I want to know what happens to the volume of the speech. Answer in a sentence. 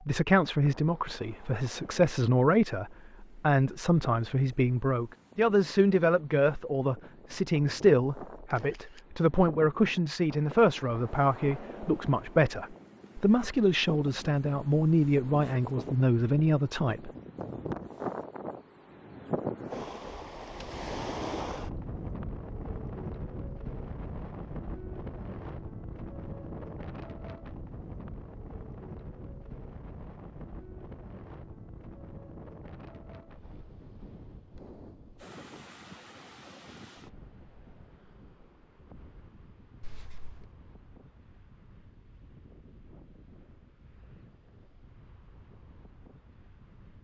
The loudness of the speech stays about the same.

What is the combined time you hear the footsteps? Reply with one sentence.
You can't hear the footsteps here.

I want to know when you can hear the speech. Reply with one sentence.
You can hear the speech from 0.1 to 17.1 s.